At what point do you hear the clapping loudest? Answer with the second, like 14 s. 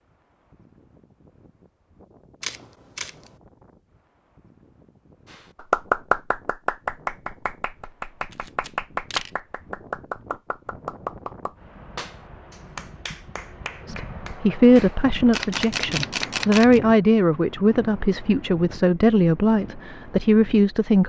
6 s.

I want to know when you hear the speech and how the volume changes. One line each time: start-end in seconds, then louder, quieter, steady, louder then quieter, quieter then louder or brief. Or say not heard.
13.8-21.0 steady.